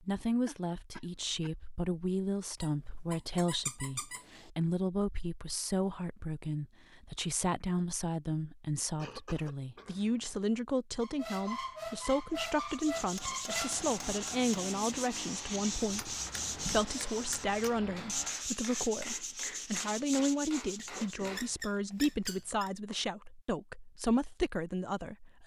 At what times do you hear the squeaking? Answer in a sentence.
You can hear the squeaking from 2.6 to 4.5 s, from 11.0 to 13.8 s and from 20.8 to 22.8 s.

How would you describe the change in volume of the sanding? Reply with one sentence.
The loudness of the sanding stays about the same.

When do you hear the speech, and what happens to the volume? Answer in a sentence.
The speech can be heard from 0.0 to 25.4 s, at a steady volume.